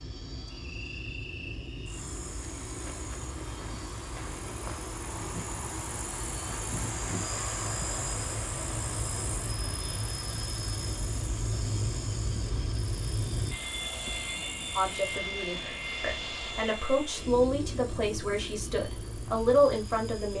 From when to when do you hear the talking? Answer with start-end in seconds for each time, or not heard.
14.8-20.3.